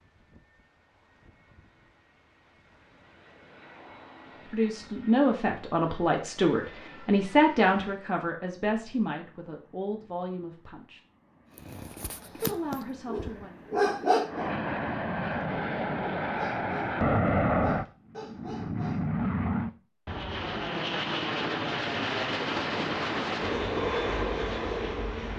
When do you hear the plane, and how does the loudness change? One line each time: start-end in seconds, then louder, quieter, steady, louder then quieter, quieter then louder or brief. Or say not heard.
0.0-25.3 louder.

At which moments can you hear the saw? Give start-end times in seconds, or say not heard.
not heard.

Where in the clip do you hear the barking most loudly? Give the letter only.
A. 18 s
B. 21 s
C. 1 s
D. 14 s
D.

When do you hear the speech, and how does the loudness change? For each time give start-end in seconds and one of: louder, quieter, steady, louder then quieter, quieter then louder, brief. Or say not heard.
4.5-11.0 quieter
12.3-13.6 brief.